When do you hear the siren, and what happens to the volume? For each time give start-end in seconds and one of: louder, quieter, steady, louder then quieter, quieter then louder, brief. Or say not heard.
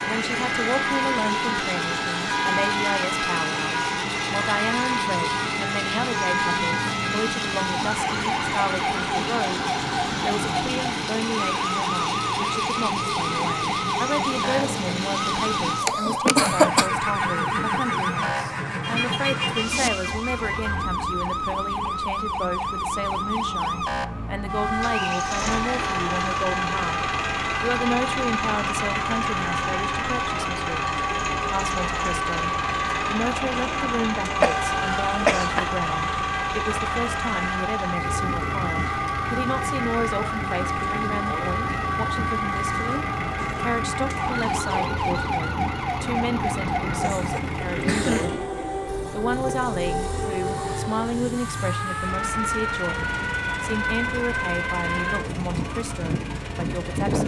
0.0-57.2 steady.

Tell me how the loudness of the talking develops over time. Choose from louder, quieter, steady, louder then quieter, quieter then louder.
steady.